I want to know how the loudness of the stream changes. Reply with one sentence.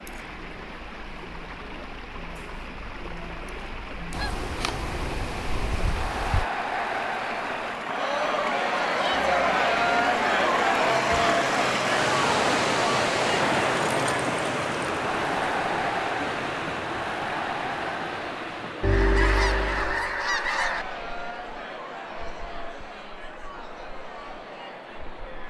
The volume of the stream goes up, then down.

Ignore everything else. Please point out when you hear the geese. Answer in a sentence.
The geese can be heard from 4.1 to 6.5 s and from 18.8 to 20.9 s.